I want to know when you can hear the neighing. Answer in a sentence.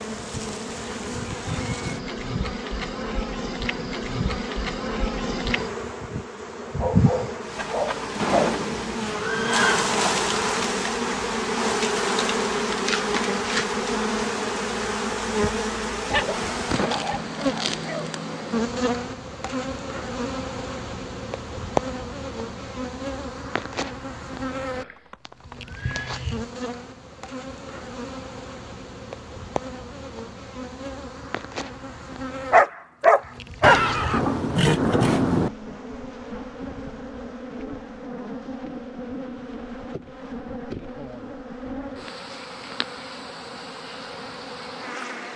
You can hear the neighing from 8.2 to 10.6 s, from 24.8 to 26.2 s and from 33.6 to 35.5 s.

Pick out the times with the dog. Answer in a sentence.
You can hear the dog from 6.6 to 8.6 s, from 16.1 to 18.1 s and from 32.5 to 33.8 s.